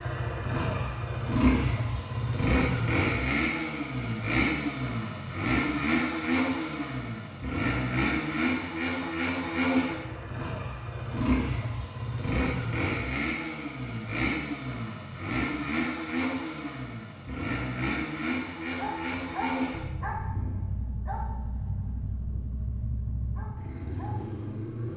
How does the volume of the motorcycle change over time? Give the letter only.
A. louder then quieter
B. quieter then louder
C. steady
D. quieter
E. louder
D.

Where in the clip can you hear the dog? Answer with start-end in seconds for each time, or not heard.
18.8-24.4.